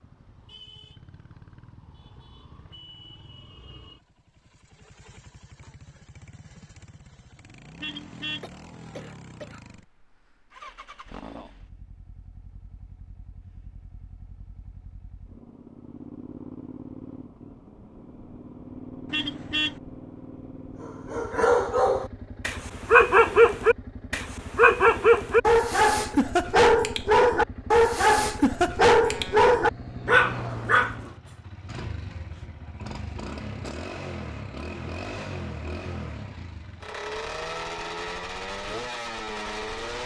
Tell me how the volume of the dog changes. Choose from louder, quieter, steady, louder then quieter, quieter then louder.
steady.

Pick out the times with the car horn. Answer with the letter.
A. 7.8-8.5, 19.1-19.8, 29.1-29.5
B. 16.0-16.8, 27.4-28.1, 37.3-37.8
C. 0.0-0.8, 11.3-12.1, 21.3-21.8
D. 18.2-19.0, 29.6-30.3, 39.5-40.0
A.